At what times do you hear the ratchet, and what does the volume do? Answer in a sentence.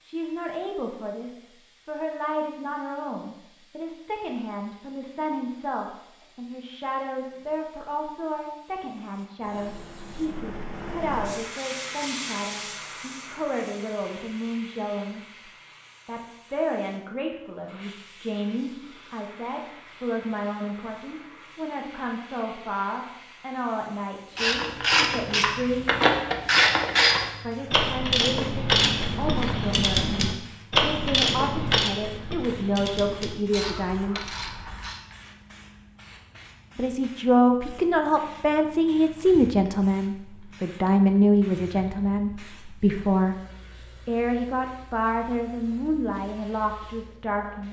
The ratchet can be heard from 24.4 to 35.0 s, getting quieter.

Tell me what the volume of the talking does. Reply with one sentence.
The volume of the talking goes up.